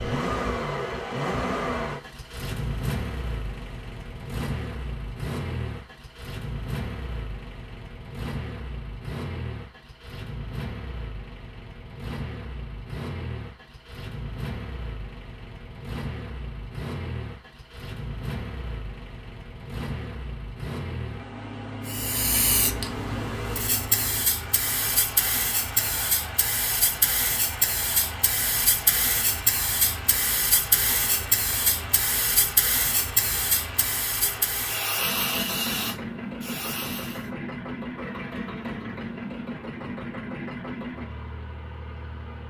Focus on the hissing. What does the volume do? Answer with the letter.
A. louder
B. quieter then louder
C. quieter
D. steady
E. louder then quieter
D.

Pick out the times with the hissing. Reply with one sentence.
You can hear the hissing from 21.9 to 37.3 s.